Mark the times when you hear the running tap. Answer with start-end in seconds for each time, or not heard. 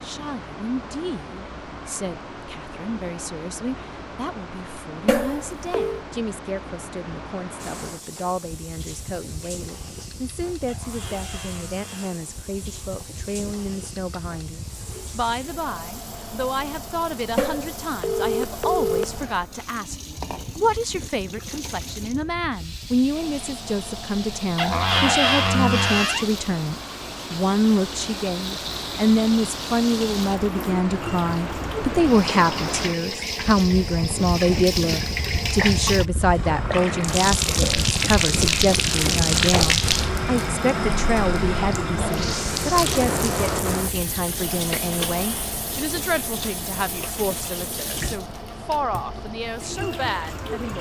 7.5-50.7.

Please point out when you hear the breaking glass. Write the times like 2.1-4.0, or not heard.
not heard.